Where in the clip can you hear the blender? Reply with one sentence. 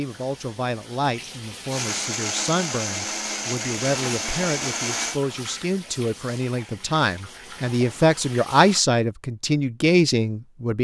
The blender can be heard from 1.7 to 5.2 s.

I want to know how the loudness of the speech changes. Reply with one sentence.
The volume of the speech goes up.